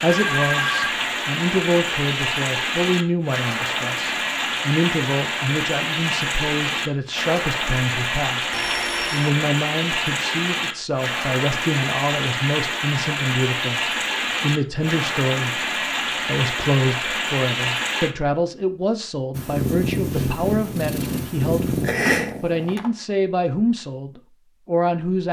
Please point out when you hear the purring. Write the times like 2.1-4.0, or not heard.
19.3-22.8.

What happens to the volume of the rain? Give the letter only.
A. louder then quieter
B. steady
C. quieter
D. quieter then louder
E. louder
B.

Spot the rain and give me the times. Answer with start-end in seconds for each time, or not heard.
0.0-18.1.